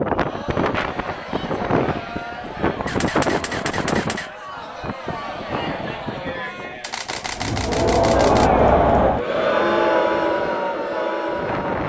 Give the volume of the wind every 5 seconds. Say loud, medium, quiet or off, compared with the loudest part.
loud, medium, medium.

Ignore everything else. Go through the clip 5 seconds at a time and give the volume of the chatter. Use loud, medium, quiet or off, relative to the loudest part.
quiet, loud, loud.